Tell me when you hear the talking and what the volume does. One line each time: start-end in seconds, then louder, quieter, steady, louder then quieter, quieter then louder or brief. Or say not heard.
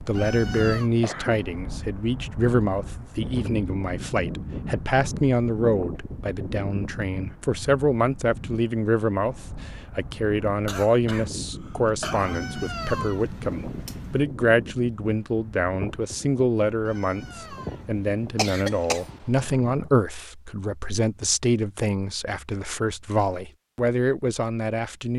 0.1-25.1 steady.